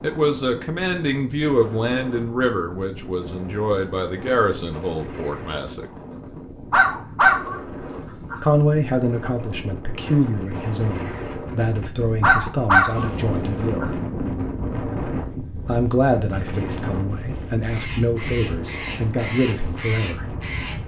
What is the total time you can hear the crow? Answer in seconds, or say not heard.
3 s.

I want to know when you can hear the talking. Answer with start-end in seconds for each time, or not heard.
0.0-5.9, 8.4-14.0, 15.7-20.4.